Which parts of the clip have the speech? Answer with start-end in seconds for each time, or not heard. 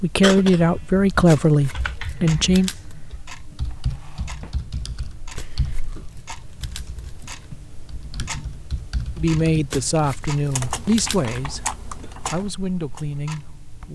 0.0-2.7, 9.2-13.9.